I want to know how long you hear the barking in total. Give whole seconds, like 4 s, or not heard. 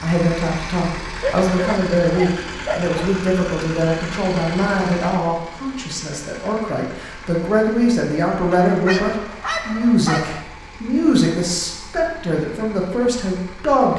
4 s.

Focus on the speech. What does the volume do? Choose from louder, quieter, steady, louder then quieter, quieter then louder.
steady.